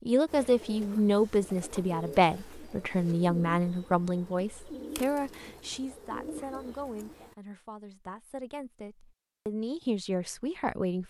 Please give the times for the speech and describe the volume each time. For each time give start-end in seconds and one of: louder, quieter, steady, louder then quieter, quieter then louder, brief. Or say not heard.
0.1-11.0 quieter then louder.